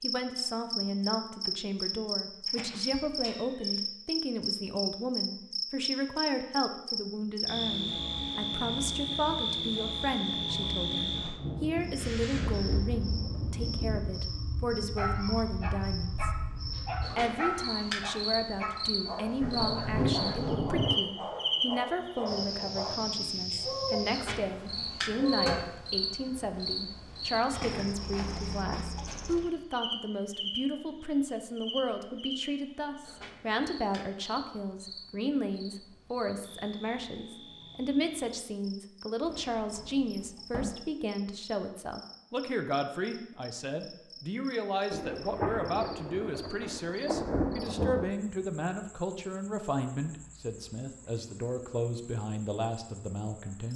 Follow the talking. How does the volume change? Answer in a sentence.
The volume of the talking stays about the same.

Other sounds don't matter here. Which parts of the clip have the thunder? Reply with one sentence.
The thunder can be heard from 11.3 to 14.2 s, from 19.4 to 20.9 s and from 44.9 to 48.1 s.